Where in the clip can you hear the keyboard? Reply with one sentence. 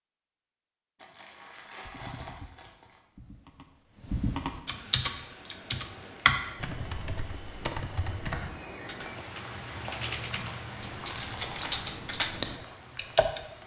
The keyboard can be heard from 1.9 to 13.4 s.